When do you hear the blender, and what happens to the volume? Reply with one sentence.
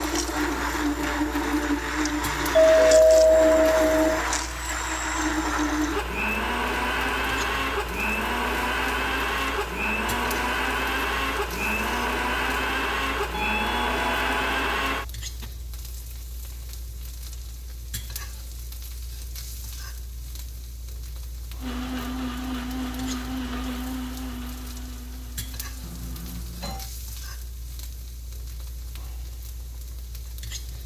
You can hear the blender from 0.0 to 15.4 s, at a steady volume; and from 21.6 to 26.4 s, getting quieter.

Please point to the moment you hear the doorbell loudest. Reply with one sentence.
The volume of the doorbell peaks at 3 seconds.